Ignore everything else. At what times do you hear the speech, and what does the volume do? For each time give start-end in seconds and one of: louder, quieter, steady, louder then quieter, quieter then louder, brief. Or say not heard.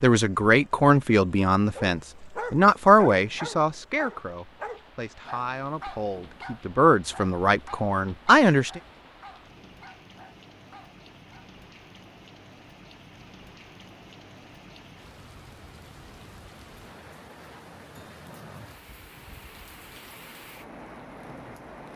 0.0-8.8 quieter then louder.